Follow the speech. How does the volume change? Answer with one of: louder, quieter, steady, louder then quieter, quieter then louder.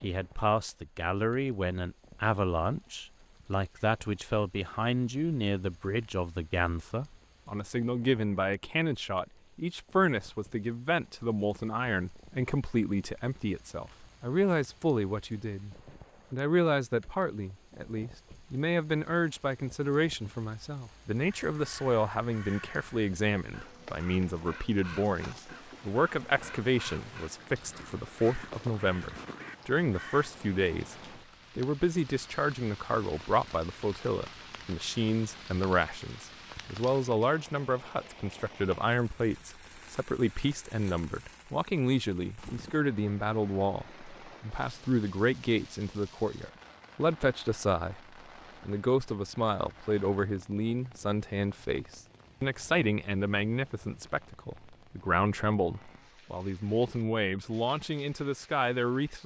steady.